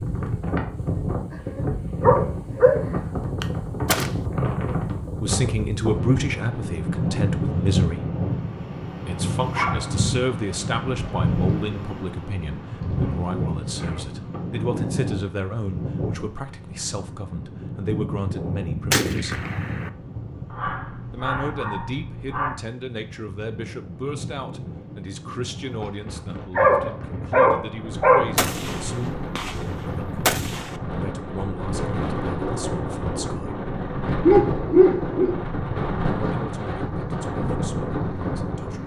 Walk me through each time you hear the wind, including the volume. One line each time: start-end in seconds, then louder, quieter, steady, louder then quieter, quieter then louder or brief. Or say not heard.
0.0-38.8 quieter then louder.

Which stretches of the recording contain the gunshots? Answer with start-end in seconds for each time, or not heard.
3.4-4.2, 17.9-19.9, 28.4-30.8.